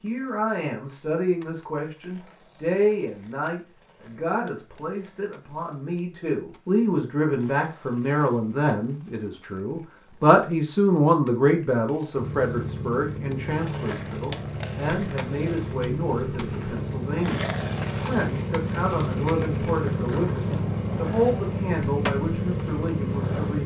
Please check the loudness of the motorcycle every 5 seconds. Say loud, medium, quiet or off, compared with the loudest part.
off, off, medium, loud, loud.